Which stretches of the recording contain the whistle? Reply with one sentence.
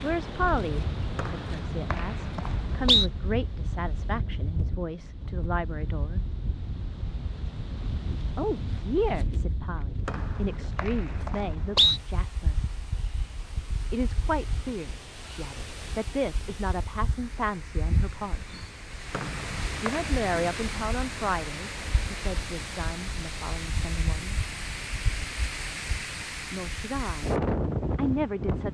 You can hear the whistle from 1.1 to 3.1 s, from 10.1 to 12.0 s and from 19.1 to 20.1 s.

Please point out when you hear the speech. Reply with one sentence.
The speech can be heard from 0.0 to 6.2 s, from 8.3 to 12.7 s, from 13.9 to 18.5 s, from 19.8 to 24.4 s, from 26.5 to 27.4 s and from 27.9 to 28.6 s.